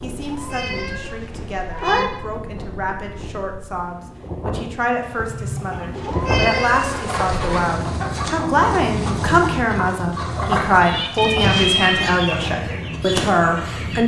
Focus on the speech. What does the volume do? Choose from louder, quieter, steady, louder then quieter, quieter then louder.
louder.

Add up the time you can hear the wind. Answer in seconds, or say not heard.
14 s.